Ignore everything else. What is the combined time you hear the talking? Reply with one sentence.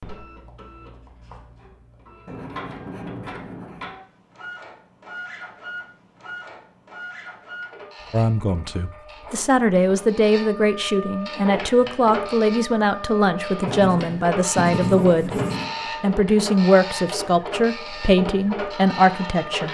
You can hear the talking for 11 seconds altogether.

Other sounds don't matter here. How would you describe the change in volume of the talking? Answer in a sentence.
The loudness of the talking stays about the same.